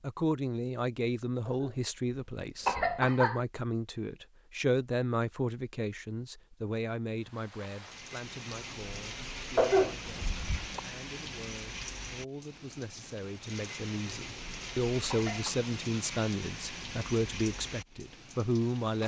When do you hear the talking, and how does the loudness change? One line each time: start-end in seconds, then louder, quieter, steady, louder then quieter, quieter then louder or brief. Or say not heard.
0.0-19.0 quieter then louder.